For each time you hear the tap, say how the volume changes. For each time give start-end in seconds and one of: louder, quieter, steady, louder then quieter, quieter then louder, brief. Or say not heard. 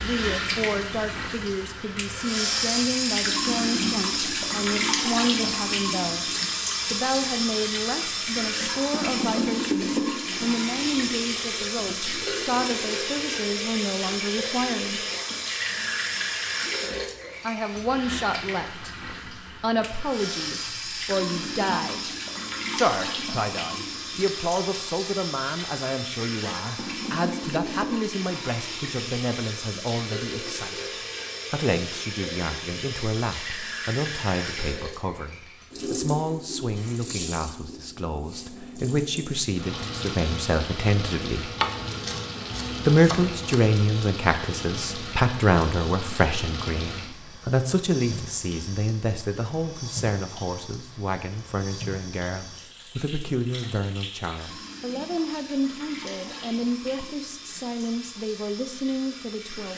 0.0-59.7 quieter.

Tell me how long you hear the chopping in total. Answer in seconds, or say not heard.
2 s.